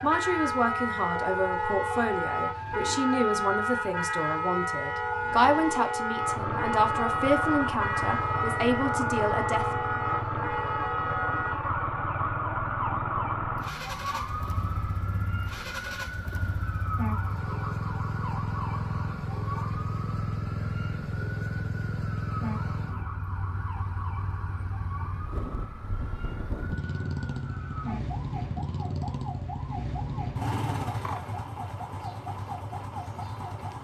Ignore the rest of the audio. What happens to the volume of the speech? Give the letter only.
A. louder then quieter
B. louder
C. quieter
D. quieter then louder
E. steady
E.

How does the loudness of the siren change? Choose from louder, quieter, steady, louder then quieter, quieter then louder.
quieter.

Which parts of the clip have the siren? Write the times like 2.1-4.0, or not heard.
0.0-33.7.